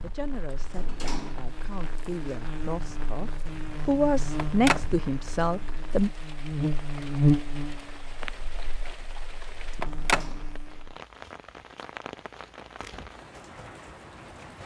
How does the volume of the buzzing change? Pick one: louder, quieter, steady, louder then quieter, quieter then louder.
louder then quieter.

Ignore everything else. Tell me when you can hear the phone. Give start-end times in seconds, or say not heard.
4.3-4.8, 9.8-10.2.